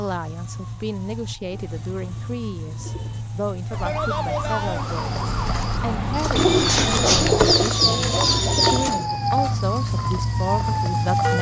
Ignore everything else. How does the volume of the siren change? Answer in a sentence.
The volume of the siren goes up.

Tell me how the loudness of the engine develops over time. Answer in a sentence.
The loudness of the engine goes up.